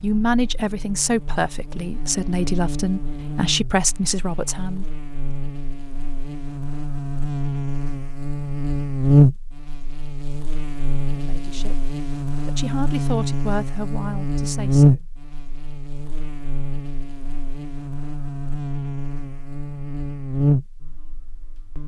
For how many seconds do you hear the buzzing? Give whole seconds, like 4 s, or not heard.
22 s.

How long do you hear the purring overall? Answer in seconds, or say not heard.
not heard.